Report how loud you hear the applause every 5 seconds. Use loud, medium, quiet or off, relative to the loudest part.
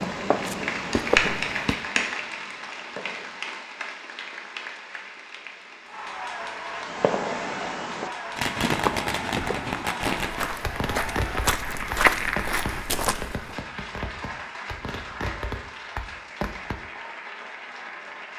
loud, medium, medium, medium.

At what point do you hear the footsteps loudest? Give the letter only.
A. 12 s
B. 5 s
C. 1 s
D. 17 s
A.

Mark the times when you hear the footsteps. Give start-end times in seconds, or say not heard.
0.0-1.8, 8.6-13.6.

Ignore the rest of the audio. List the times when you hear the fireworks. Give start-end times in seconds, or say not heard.
0.0-3.6, 6.8-16.9.